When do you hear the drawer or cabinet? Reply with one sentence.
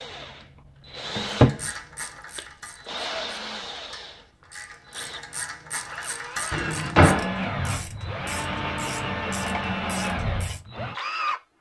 You can hear the drawer or cabinet from 1.1 to 1.6 s and from 6.5 to 7.3 s.